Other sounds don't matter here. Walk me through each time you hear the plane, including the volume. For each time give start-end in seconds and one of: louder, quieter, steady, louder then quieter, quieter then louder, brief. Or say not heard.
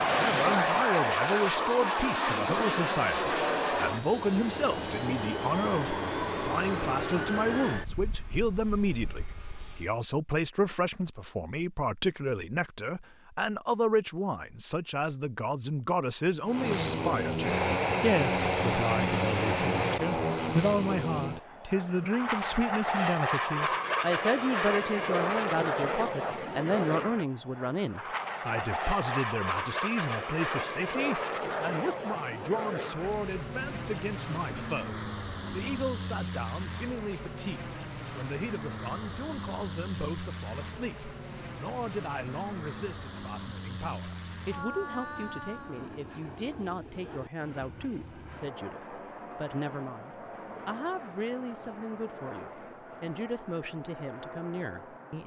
0.0-10.0 quieter
16.4-55.2 quieter.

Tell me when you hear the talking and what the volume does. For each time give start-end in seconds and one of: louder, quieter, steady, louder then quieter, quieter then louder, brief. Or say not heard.
0.1-55.2 quieter.